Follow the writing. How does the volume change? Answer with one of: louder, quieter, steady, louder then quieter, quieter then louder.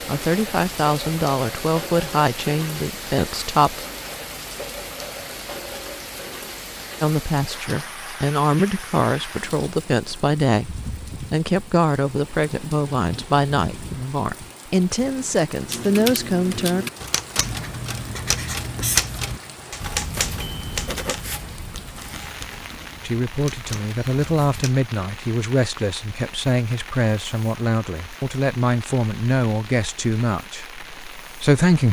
quieter.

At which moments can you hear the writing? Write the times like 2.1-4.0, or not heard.
17.4-24.7.